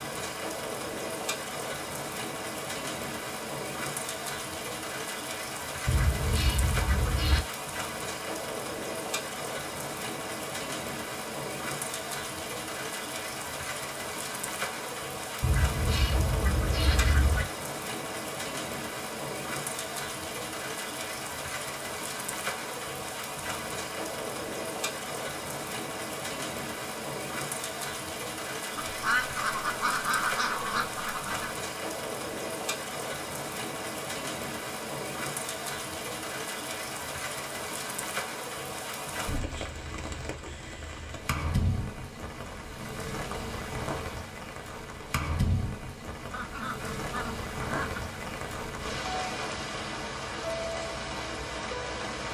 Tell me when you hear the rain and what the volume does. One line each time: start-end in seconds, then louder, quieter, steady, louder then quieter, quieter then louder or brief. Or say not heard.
0.0-52.2 steady.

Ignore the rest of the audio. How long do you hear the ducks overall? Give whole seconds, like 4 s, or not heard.
8 s.